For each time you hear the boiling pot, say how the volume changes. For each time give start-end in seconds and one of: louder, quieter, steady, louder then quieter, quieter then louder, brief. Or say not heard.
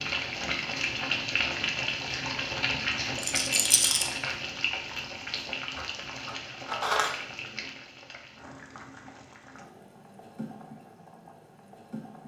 0.0-12.2 quieter.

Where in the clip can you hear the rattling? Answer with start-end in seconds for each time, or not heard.
3.1-4.1.